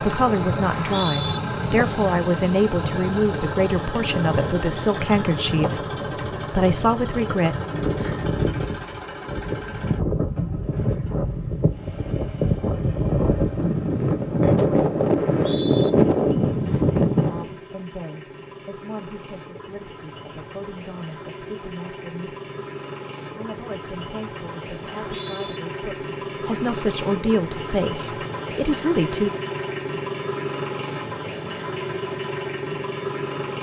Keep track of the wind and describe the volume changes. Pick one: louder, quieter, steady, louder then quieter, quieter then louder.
louder.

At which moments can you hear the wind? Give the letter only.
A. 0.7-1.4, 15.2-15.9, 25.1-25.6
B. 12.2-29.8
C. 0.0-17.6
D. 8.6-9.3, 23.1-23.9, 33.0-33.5
C.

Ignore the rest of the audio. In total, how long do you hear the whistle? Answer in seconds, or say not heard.
2 s.